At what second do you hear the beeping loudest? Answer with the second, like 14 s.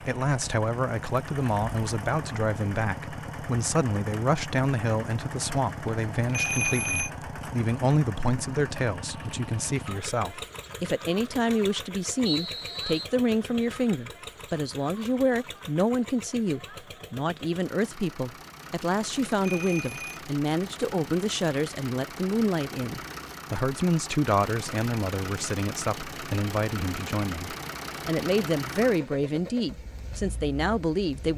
7 s.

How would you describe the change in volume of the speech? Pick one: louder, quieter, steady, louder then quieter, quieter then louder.
steady.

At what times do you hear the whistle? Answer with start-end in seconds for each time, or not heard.
12.2-13.1.